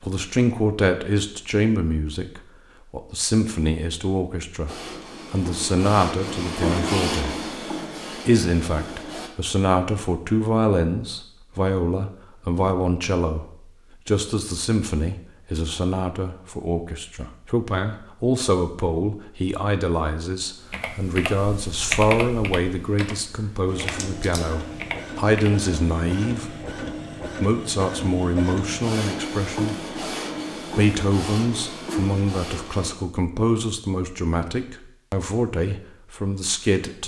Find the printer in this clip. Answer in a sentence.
The printer can be heard from 4.7 to 9.3 s and from 23.6 to 33.0 s.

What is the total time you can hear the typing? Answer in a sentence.
You can hear the typing for 5 seconds altogether.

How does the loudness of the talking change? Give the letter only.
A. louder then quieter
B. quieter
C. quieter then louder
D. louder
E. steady
E.